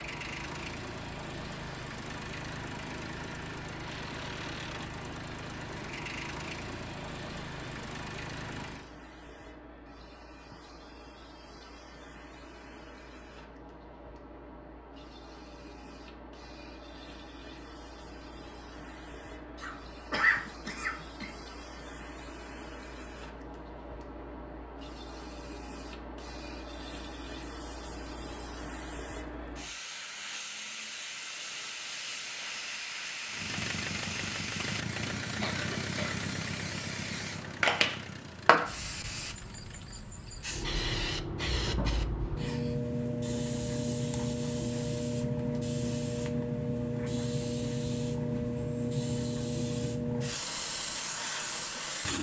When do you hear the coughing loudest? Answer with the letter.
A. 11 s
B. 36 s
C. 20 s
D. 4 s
C.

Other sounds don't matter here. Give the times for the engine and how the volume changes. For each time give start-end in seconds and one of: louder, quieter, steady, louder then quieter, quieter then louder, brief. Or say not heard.
0.0-8.9 steady
33.2-40.0 quieter.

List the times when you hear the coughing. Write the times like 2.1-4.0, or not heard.
19.6-21.3, 35.4-36.3.